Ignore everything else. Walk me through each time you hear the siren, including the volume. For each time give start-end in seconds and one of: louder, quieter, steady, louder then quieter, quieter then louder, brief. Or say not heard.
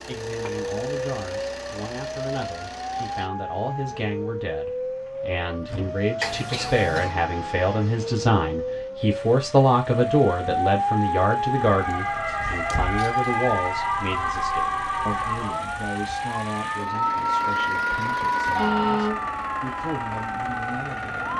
0.1-21.3 louder.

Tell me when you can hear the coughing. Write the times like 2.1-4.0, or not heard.
6.2-7.2.